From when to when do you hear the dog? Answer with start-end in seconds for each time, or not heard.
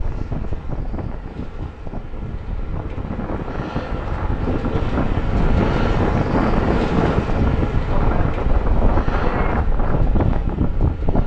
not heard.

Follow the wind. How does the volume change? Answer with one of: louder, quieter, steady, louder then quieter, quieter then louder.
louder.